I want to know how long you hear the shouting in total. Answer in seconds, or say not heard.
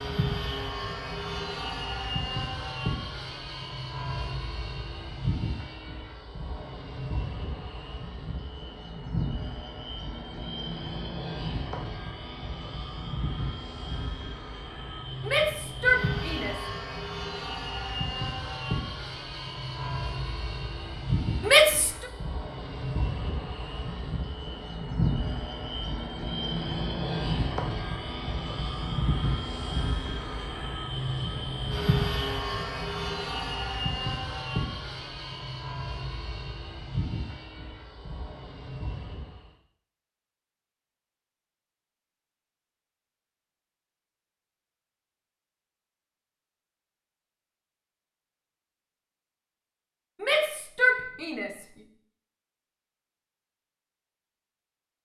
3 s.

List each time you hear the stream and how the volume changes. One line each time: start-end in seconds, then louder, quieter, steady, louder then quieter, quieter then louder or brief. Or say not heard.
not heard.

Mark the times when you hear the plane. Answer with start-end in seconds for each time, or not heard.
0.0-39.5.